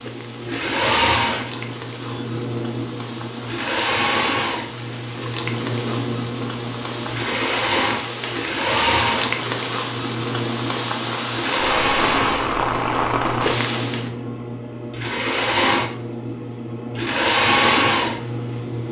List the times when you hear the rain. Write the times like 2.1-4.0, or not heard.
0.0-14.1.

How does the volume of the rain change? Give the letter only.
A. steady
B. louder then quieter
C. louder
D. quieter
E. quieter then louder
C.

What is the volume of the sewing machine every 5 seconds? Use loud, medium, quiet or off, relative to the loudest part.
loud, loud, medium, loud.